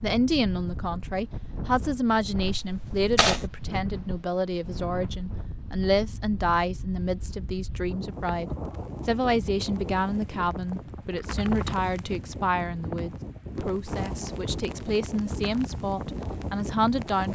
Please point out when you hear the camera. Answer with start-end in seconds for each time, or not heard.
2.4-3.5.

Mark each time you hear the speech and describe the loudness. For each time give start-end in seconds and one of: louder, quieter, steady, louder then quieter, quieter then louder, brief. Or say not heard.
0.0-17.3 steady.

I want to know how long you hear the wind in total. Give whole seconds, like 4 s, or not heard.
17 s.